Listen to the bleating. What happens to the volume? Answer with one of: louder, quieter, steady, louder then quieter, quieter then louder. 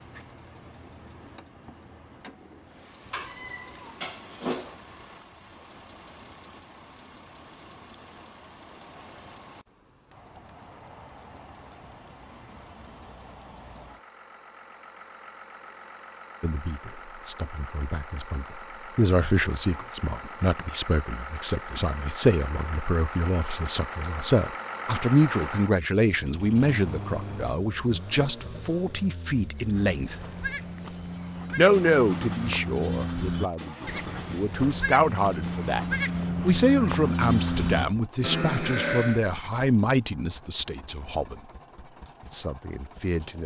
louder.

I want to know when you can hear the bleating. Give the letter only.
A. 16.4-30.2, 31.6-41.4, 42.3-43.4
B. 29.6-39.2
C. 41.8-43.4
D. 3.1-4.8
B.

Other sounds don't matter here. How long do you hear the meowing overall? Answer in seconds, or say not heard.
2 s.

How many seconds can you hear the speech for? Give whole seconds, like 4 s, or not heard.
25 s.